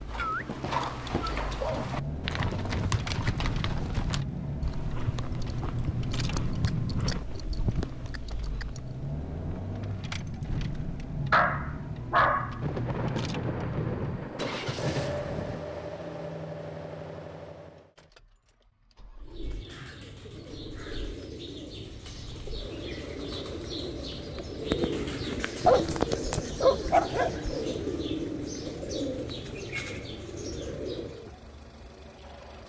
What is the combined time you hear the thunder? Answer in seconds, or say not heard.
3 s.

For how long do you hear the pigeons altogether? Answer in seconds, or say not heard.
12 s.